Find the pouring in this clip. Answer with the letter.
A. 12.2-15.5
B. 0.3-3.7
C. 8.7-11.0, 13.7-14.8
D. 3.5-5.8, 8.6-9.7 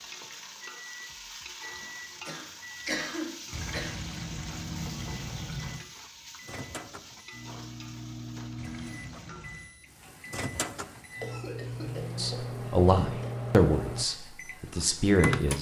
D.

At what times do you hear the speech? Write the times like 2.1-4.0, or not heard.
12.2-15.5.